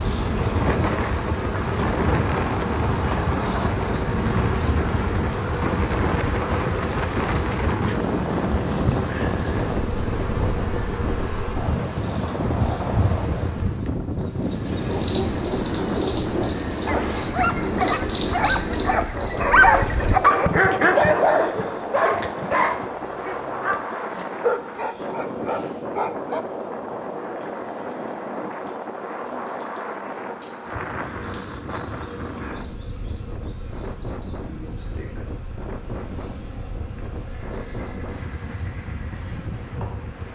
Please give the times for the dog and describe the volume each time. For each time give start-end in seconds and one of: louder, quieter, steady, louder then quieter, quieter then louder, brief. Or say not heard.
14.8-26.4 louder then quieter.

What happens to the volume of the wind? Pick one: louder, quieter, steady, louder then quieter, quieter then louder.
quieter.